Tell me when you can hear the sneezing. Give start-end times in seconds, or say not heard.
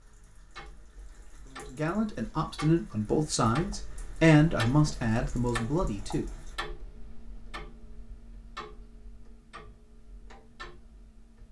not heard.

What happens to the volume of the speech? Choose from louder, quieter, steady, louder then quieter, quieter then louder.
louder then quieter.